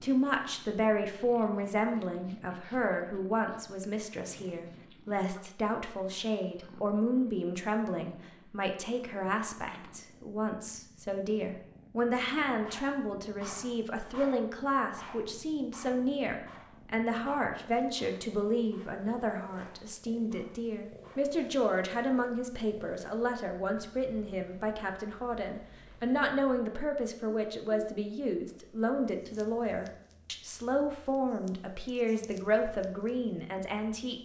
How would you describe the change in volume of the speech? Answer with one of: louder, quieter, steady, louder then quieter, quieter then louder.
steady.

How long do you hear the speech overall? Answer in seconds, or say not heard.
34 s.